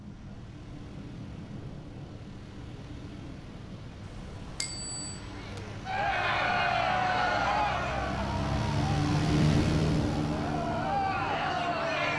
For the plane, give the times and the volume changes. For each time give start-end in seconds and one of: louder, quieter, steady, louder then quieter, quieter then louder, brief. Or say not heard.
0.0-12.1 louder.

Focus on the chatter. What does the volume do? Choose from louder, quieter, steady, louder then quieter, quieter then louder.
quieter then louder.